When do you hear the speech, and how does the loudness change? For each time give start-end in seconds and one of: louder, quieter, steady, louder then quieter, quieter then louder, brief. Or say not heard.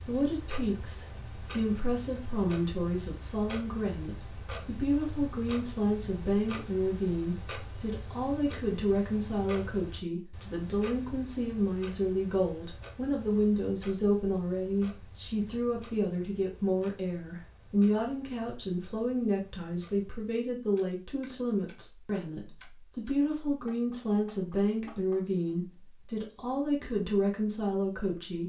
0.1-28.4 steady.